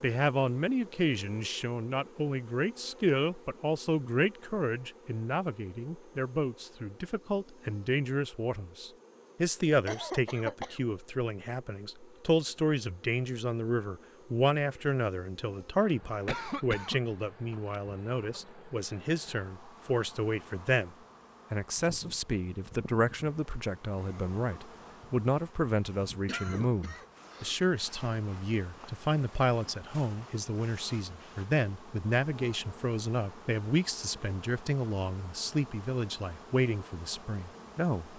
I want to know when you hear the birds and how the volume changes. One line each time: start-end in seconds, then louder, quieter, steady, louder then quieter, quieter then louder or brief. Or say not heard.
not heard.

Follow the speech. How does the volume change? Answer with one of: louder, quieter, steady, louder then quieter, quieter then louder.
steady.